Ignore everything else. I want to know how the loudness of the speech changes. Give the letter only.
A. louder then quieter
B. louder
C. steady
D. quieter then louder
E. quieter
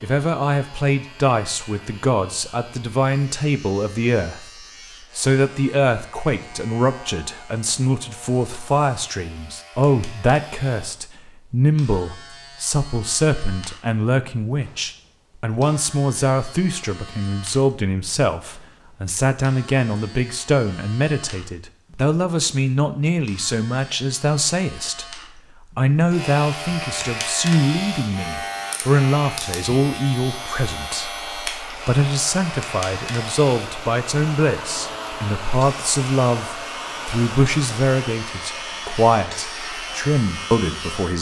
C.